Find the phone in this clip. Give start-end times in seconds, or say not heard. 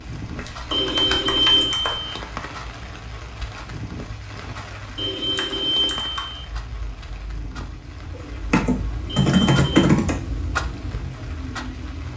0.7-2.2, 5.0-6.5, 9.1-9.8.